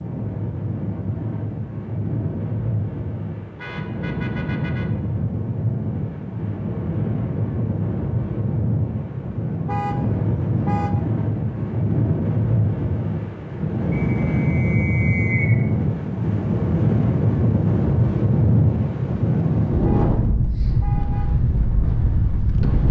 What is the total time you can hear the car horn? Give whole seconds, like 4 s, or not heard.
4 s.